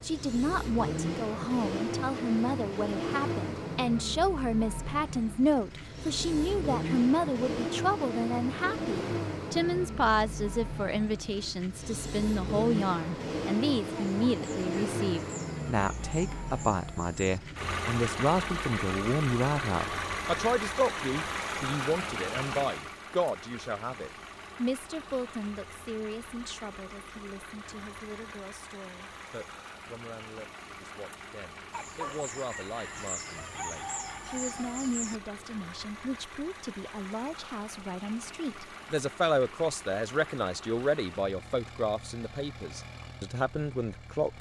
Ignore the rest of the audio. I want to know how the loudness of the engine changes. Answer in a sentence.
The volume of the engine goes down.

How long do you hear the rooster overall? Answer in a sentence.
You can hear the rooster for 7 seconds altogether.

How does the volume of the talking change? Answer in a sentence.
The loudness of the talking goes down, then up.